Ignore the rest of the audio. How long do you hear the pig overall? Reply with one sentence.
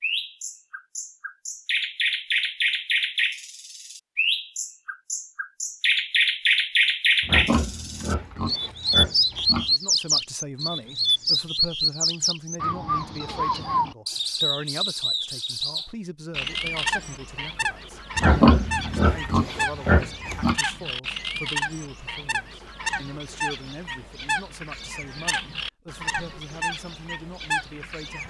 You can hear the pig for 5 seconds altogether.